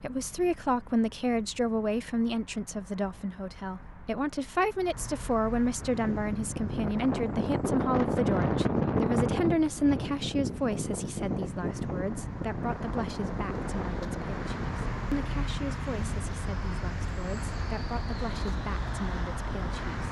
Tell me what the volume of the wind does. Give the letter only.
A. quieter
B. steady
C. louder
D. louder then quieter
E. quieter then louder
A.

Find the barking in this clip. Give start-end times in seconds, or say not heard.
not heard.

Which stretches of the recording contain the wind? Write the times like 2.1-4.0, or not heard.
5.8-20.0.